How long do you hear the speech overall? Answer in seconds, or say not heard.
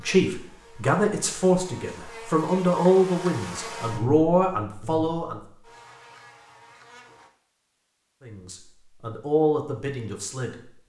8 s.